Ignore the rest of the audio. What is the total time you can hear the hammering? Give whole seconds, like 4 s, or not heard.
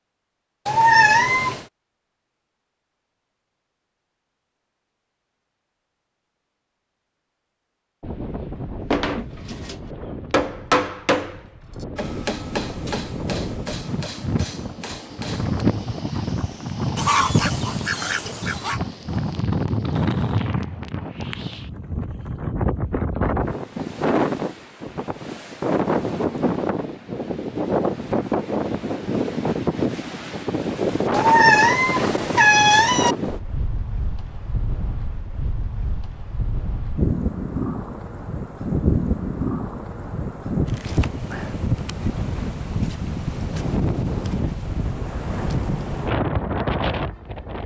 7 s.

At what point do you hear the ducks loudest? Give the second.
17 s.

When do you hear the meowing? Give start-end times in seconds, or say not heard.
0.7-1.6, 31.1-33.1.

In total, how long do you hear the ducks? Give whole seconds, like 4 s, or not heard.
2 s.